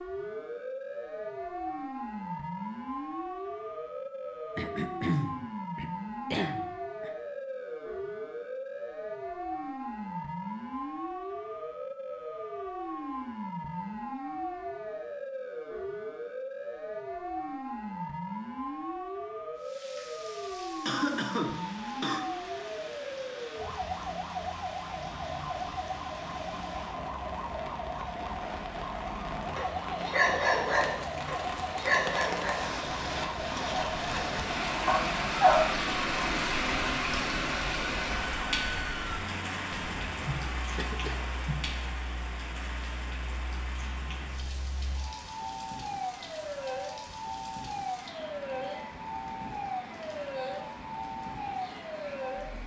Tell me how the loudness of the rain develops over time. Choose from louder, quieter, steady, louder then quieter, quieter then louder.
louder then quieter.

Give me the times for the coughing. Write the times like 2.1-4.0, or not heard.
4.5-7.1, 20.9-22.3, 39.7-41.8.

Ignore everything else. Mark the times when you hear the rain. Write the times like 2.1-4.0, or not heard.
19.6-52.6.